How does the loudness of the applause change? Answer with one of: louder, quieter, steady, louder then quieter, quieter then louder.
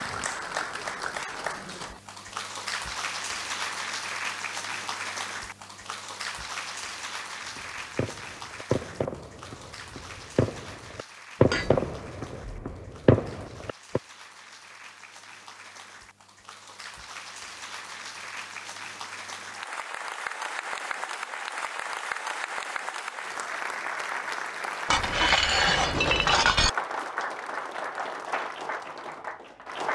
quieter then louder.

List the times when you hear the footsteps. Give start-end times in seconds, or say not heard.
not heard.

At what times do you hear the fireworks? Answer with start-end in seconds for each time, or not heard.
7.5-14.0.